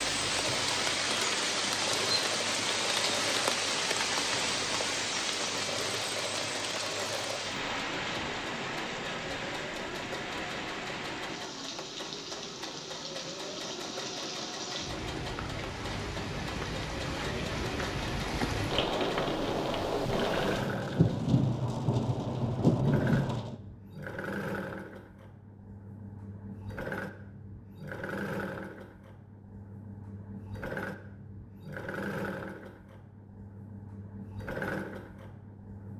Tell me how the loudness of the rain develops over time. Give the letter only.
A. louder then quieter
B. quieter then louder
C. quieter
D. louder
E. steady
B.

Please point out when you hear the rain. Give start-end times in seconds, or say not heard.
0.0-23.6.